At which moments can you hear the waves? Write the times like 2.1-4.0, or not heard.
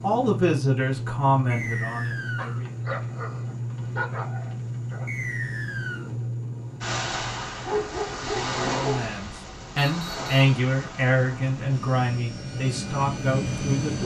6.8-14.0.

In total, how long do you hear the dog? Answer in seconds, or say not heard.
4 s.